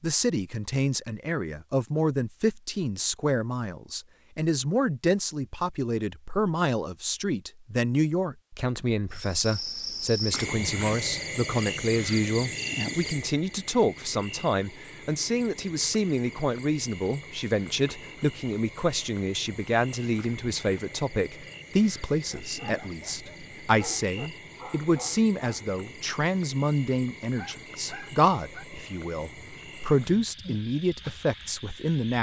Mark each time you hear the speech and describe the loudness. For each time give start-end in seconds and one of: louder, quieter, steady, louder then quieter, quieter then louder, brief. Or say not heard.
0.0-32.1 steady.